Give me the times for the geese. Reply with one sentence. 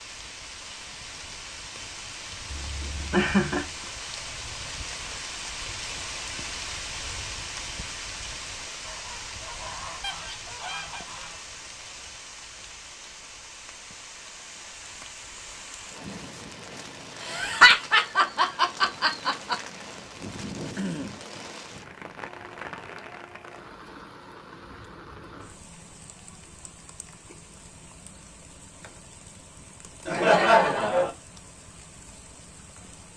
The geese can be heard from 8.7 to 11.5 s.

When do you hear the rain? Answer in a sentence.
You can hear the rain from 0.0 to 33.1 s.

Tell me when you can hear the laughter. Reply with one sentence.
The laughter can be heard from 2.5 to 3.7 s, from 17.2 to 19.6 s and from 30.1 to 31.1 s.